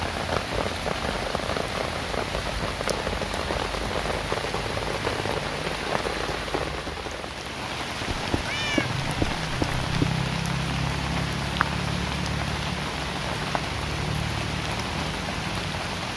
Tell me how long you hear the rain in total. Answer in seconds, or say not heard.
16 s.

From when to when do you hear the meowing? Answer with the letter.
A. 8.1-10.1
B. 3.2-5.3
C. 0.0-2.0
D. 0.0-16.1
A.